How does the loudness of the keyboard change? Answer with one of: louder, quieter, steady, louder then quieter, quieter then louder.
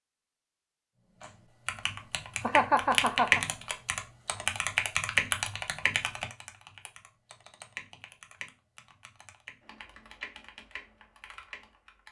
quieter.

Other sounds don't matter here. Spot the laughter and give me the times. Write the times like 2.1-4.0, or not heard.
2.4-3.4.